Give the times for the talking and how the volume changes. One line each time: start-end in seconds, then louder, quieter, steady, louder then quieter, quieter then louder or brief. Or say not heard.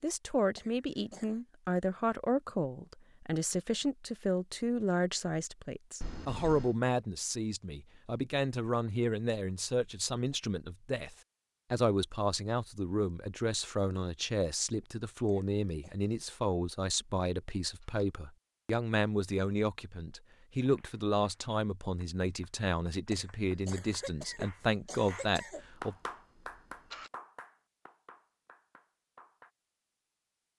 0.0-25.9 steady.